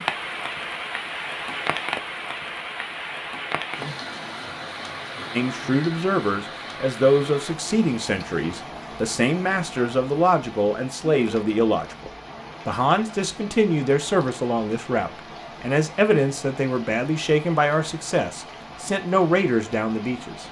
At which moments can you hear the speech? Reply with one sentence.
You can hear the speech from 5.3 to 20.4 s.